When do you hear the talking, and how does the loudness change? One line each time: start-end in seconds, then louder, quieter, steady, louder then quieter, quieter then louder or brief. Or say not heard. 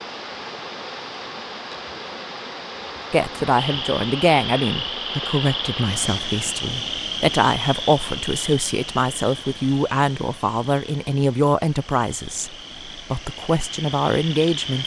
3.1-14.8 steady.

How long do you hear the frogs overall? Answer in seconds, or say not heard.
11 s.